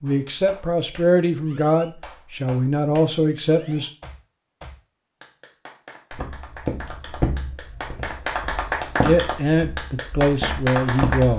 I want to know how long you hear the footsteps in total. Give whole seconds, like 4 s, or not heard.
5 s.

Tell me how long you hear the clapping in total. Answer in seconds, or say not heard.
11 s.